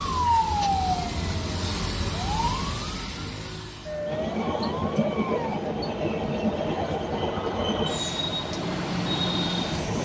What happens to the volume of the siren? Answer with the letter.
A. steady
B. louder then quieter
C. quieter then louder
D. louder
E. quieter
E.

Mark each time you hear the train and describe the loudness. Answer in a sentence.
The train can be heard from 4.0 to 10.0 s, at a steady volume.